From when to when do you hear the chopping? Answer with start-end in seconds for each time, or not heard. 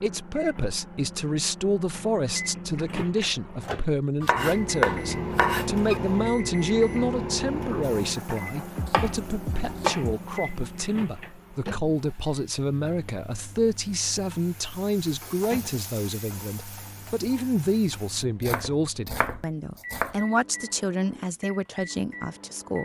4.2-6.0, 8.8-10.2, 18.4-20.2.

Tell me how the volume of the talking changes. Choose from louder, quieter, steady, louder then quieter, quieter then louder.
steady.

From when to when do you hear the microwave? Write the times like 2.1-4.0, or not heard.
0.0-22.8.